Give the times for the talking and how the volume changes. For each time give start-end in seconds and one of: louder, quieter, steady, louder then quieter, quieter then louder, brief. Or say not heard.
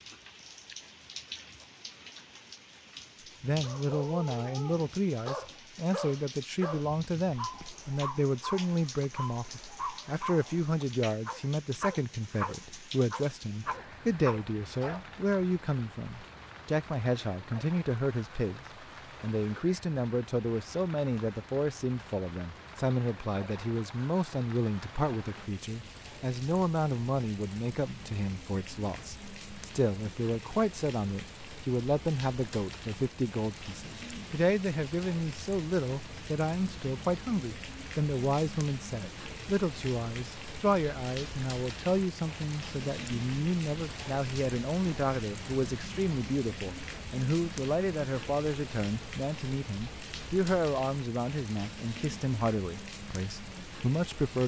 3.4-54.4 steady.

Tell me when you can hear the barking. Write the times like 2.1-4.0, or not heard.
3.6-15.1.